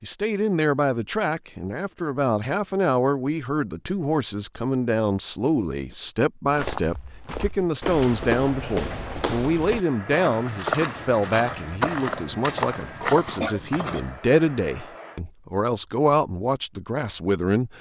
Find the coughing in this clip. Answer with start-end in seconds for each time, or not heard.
13.4-14.0.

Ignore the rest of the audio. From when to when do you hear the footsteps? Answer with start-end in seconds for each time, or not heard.
6.5-14.2.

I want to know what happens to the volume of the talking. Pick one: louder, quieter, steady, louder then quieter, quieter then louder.
steady.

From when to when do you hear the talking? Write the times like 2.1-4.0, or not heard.
0.0-17.7.